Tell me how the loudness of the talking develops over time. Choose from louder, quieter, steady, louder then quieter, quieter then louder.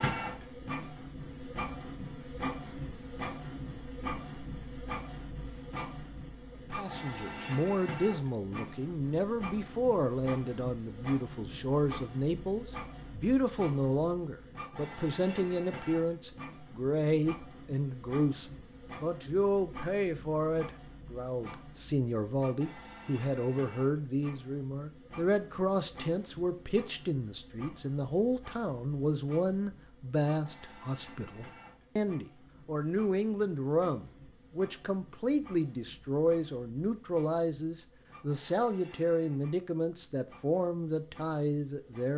steady.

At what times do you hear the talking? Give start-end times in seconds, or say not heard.
6.7-42.1.